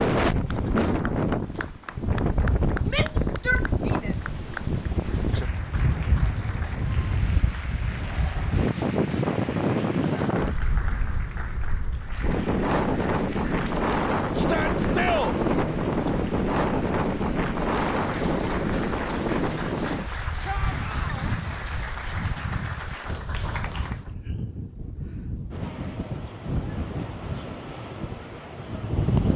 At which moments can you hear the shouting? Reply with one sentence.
You can hear the shouting from 2.9 to 4.2 s, from 14.3 to 15.3 s and from 20.4 to 21.3 s.